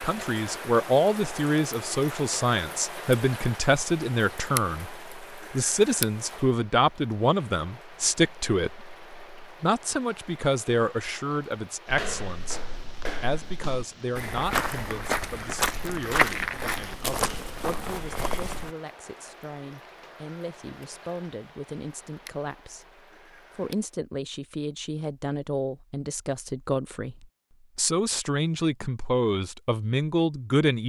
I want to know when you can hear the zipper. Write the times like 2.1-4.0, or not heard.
not heard.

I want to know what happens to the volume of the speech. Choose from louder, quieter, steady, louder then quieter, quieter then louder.
quieter then louder.